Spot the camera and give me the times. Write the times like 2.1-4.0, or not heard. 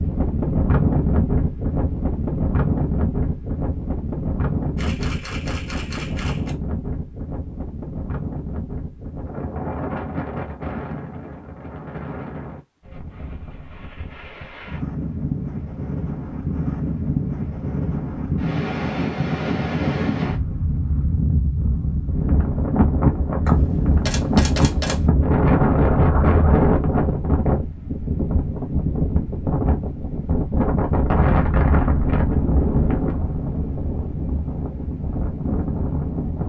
4.8-6.5, 23.4-25.0.